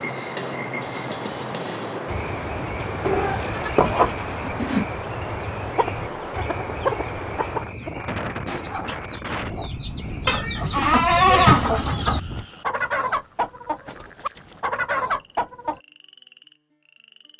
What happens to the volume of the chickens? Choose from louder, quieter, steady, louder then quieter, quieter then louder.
quieter then louder.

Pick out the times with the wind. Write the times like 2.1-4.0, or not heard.
0.0-12.4.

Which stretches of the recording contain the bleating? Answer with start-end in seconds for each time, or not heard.
3.0-4.8, 10.2-12.2.